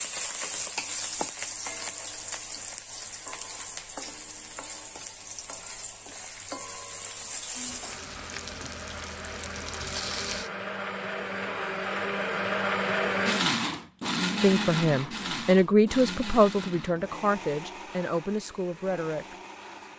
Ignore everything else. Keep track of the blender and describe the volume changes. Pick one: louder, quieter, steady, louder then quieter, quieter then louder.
louder then quieter.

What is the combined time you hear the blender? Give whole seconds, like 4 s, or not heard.
12 s.